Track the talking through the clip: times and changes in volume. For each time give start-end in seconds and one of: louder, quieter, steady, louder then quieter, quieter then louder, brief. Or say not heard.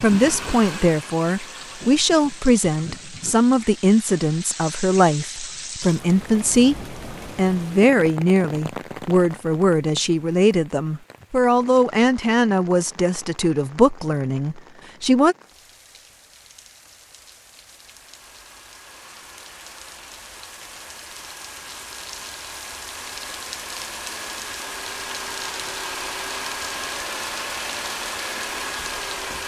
0.0-15.3 steady.